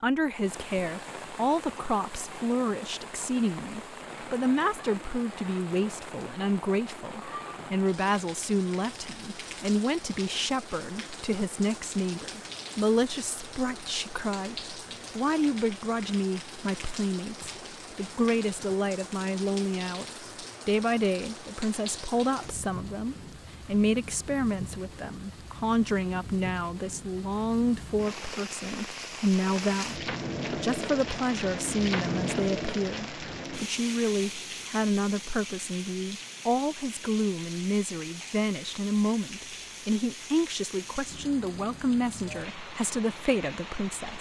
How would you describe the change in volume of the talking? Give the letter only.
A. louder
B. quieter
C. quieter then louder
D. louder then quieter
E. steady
E.